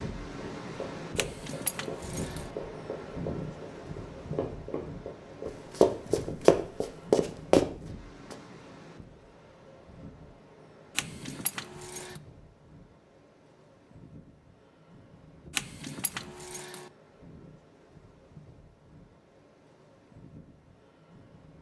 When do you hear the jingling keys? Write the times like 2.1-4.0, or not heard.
1.1-2.5, 10.9-12.2, 15.5-16.9.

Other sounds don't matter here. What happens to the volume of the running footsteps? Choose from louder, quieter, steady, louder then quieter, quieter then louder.
louder.